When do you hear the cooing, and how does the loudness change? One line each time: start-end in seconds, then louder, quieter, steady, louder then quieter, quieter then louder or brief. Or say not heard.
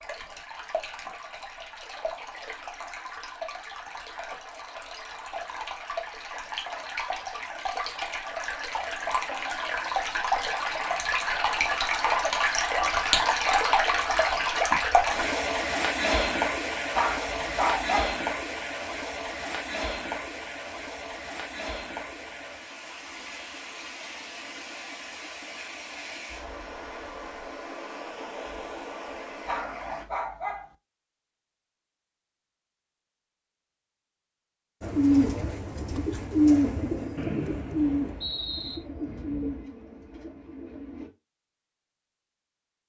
34.8-41.1 louder then quieter.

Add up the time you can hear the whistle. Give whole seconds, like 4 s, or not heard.
2 s.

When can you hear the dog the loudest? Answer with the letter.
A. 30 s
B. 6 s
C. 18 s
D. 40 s
C.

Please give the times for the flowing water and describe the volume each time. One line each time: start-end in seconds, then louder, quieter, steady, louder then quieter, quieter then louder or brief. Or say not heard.
0.0-30.1 louder then quieter.